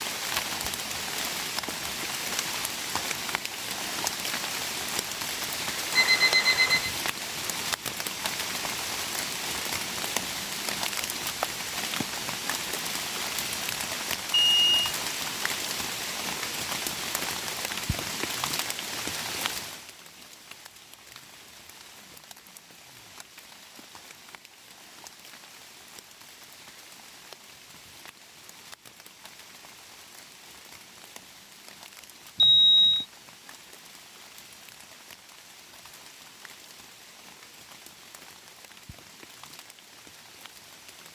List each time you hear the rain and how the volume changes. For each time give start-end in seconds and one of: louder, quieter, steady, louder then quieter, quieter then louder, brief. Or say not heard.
0.0-41.1 quieter.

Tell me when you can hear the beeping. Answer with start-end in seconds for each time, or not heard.
5.9-6.9, 14.3-14.8, 32.4-33.0.